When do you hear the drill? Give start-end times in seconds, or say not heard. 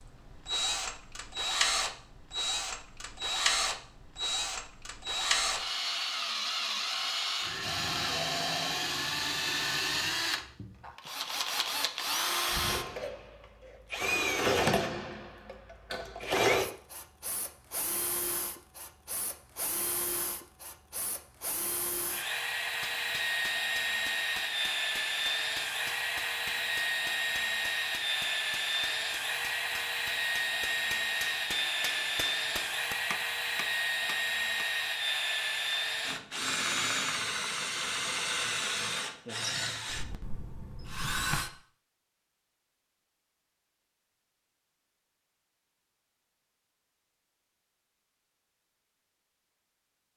0.0-41.5.